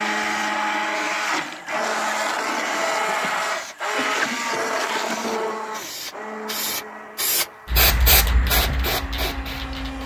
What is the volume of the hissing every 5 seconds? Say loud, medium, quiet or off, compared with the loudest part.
quiet, loud.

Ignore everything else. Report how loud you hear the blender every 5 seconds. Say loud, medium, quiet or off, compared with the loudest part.
loud, medium.